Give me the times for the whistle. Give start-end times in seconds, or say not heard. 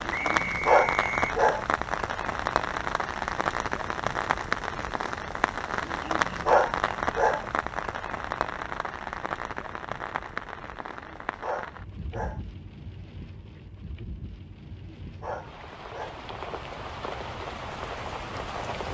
0.1-1.4.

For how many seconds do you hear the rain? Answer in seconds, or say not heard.
19 s.